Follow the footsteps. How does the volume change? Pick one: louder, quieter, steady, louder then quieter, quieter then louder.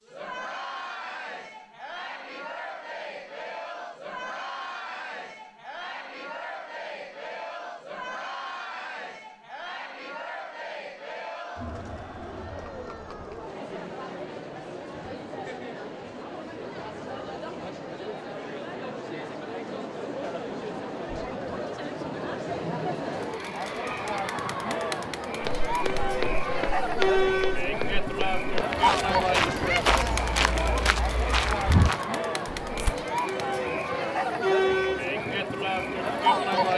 quieter then louder.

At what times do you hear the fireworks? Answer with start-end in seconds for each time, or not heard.
not heard.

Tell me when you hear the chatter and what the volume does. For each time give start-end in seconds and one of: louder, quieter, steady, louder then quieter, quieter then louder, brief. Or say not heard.
0.0-36.7 louder.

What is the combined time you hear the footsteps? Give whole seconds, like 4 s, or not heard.
8 s.